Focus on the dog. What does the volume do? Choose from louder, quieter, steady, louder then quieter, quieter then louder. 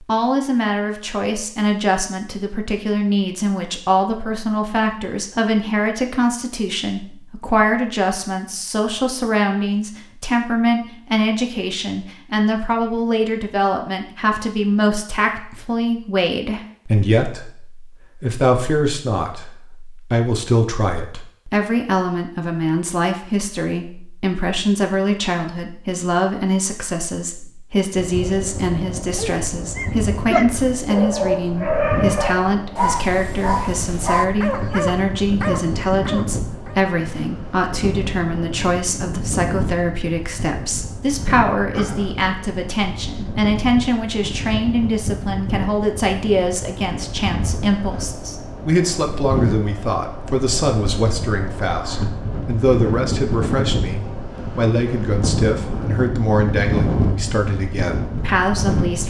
quieter.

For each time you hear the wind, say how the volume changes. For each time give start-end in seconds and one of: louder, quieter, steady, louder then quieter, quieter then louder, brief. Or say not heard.
27.9-59.0 louder.